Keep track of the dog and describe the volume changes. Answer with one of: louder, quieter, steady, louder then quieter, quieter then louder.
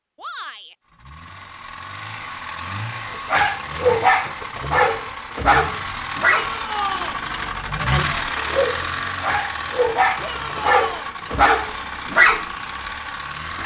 quieter then louder.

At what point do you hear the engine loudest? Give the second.
8 s.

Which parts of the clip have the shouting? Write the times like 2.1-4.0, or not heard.
0.1-0.8, 6.3-7.2, 10.2-11.1.